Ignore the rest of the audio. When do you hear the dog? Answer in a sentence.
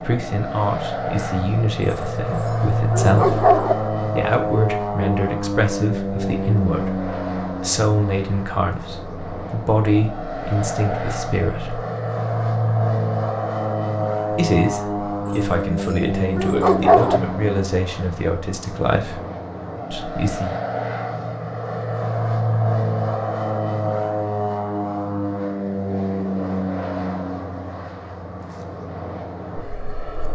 You can hear the dog from 1.9 to 3.8 s and from 15.2 to 17.2 s.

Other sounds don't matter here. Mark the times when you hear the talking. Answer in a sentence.
You can hear the talking from 0.0 to 11.8 s, from 14.3 to 19.2 s and from 19.9 to 20.6 s.